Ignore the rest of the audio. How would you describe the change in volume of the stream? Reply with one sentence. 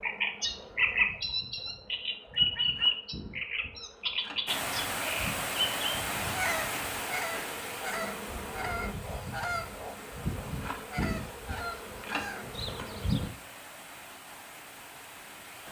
The volume of the stream goes down.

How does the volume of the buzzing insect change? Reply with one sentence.
The volume of the buzzing insect goes up.